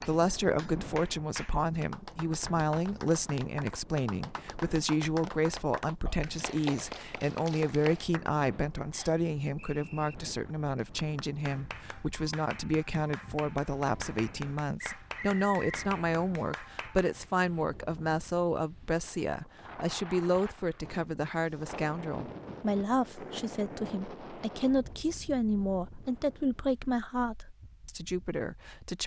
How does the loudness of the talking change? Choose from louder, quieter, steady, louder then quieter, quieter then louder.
steady.